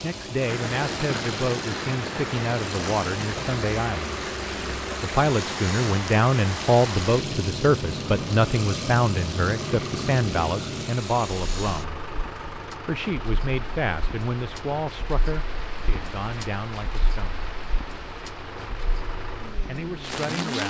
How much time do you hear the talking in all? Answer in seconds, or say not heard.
17 s.